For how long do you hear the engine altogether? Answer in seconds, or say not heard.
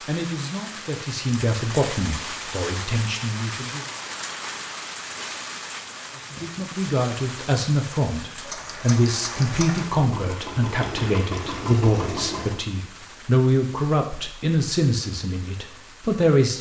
4 s.